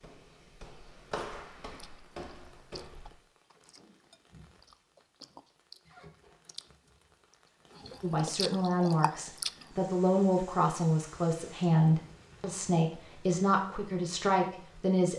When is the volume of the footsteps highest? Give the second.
1 s.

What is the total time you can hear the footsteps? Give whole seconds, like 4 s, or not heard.
3 s.